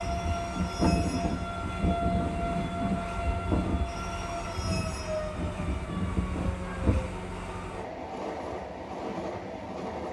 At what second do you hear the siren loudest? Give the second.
1 s.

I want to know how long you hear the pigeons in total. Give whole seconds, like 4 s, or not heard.
not heard.